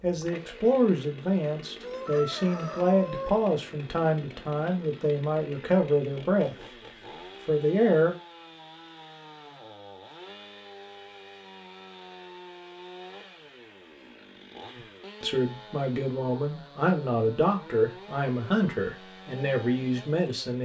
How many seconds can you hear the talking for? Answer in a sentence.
You can hear the talking for 13 seconds altogether.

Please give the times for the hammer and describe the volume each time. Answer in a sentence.
The hammer can't be heard in this clip.